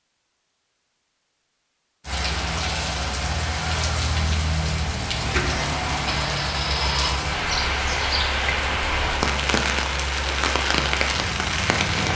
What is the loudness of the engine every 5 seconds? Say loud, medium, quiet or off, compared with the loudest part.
off, loud, loud.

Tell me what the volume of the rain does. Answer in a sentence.
The volume of the rain stays about the same.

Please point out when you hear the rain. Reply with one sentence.
You can hear the rain from 2.0 to 12.1 s.